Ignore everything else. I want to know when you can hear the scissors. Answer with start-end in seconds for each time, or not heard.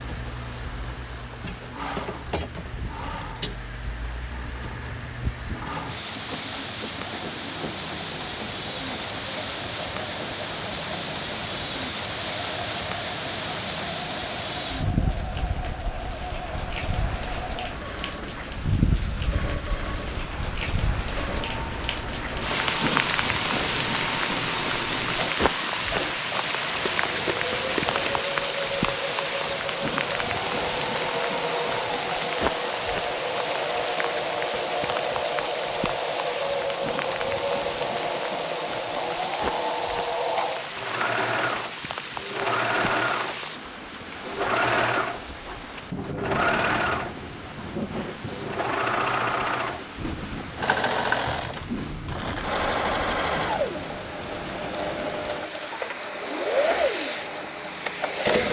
26.8-28.2.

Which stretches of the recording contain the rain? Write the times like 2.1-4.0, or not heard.
0.0-58.4.